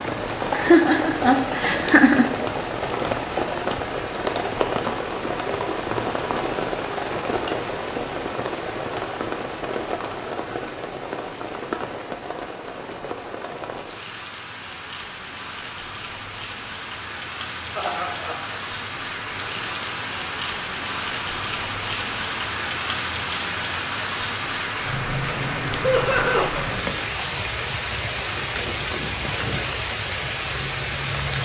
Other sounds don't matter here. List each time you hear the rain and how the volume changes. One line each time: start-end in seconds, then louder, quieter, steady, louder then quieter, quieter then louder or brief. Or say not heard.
0.0-31.4 quieter then louder.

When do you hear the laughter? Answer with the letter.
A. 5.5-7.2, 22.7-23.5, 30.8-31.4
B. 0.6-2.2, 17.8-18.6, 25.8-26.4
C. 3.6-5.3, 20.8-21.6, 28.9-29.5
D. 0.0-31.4
B.